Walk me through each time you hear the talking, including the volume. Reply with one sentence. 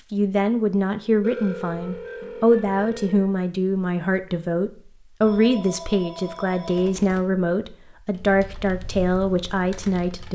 The talking can be heard from 0.1 to 10.3 s, at a steady volume.